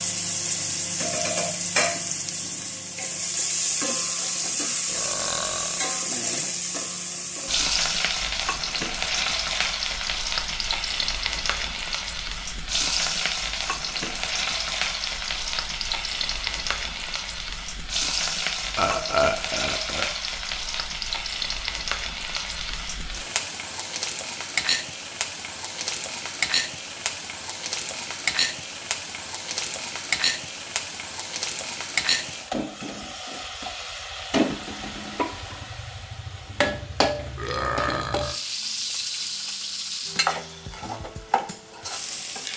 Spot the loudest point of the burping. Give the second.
19 s.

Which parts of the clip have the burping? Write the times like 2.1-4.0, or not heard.
4.8-5.8, 18.8-20.1, 37.4-38.4.